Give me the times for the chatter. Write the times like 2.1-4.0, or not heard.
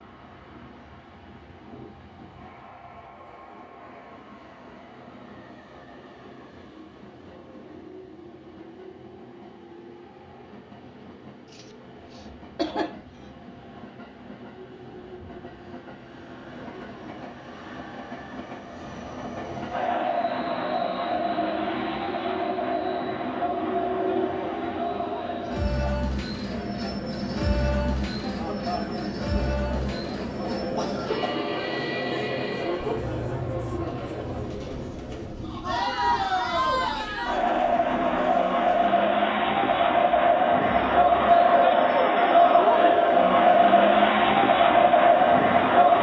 19.2-45.9.